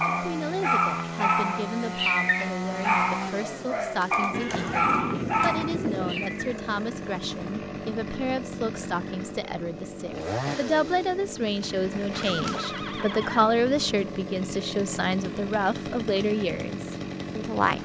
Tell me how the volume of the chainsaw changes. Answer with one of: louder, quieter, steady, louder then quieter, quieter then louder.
steady.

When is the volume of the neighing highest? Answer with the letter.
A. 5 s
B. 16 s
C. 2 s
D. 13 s
A.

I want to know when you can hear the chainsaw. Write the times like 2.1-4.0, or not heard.
0.0-17.8.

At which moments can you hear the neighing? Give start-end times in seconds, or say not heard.
4.3-6.3, 12.2-13.4.